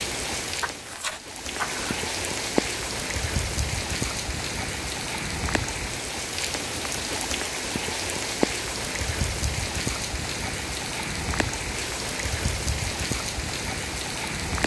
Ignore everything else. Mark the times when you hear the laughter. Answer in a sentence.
You can't hear the laughter here.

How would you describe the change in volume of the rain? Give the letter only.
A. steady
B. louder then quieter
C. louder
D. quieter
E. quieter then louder
A.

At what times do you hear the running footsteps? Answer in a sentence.
You can't hear the running footsteps here.